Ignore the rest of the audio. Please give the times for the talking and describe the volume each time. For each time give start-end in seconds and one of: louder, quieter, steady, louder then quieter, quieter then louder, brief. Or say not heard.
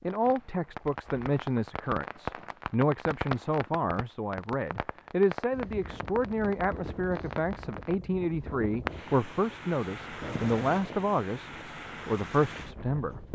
0.0-13.3 steady.